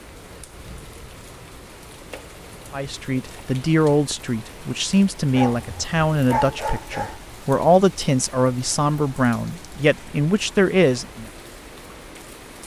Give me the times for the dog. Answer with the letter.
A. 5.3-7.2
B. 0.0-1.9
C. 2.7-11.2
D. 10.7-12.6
A.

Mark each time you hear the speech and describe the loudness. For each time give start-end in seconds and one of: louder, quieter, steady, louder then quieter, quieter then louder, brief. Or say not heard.
2.7-11.2 steady.